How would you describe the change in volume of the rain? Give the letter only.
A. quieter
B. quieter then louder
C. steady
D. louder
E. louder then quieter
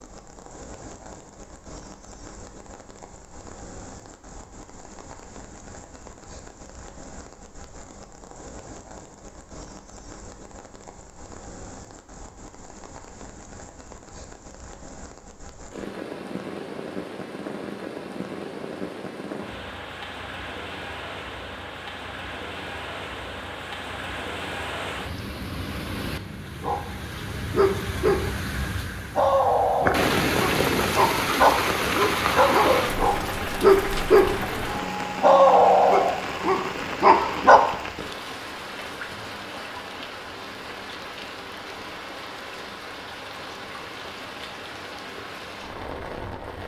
E.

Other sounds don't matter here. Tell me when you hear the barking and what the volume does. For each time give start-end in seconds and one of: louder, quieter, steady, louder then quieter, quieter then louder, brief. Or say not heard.
26.6-28.3 brief
29.1-34.4 louder
35.2-37.6 brief.